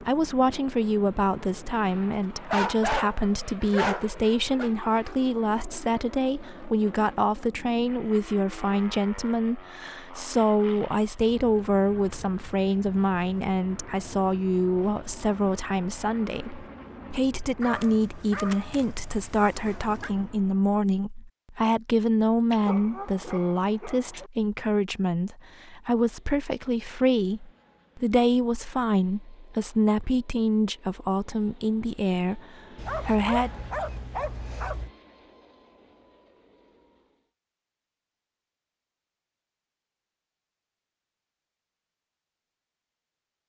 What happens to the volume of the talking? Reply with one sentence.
The volume of the talking stays about the same.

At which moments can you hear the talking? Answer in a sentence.
The talking can be heard from 0.0 to 33.5 s.